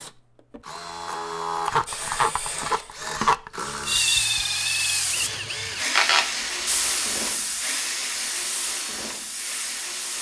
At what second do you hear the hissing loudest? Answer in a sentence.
The loudest moment of the hissing is at 6 seconds.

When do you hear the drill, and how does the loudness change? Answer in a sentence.
The drill can be heard from 0.0 to 10.1 s, getting quieter.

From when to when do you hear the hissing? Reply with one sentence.
You can hear the hissing from 1.9 to 10.1 s.